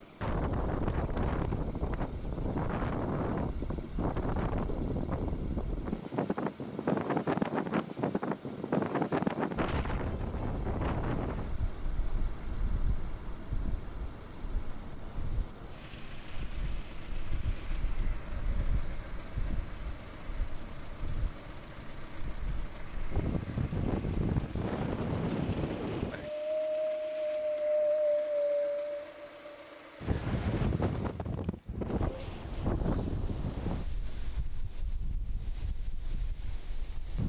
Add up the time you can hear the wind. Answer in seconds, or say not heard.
37 s.